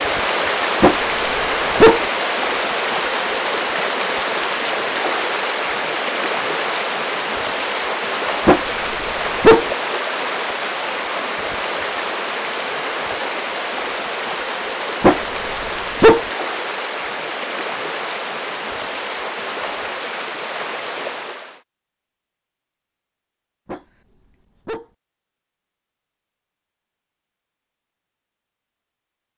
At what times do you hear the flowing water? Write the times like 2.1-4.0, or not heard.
0.0-21.6.